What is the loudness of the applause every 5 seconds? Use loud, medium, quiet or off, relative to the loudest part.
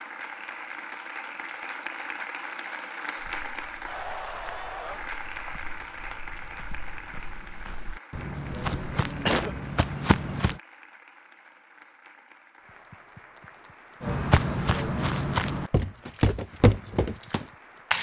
loud, medium, quiet, quiet.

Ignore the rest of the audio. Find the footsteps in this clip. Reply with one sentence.
The footsteps can be heard from 3.1 to 10.6 s and from 14.0 to 17.9 s.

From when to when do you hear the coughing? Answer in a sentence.
You can hear the coughing from 9.2 to 9.8 s.